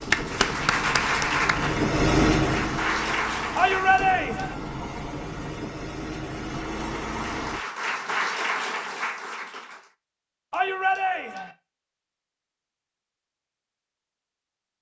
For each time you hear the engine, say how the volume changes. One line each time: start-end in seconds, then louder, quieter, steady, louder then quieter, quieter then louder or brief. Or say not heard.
0.0-7.6 louder then quieter.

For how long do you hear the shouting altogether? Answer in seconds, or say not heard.
2 s.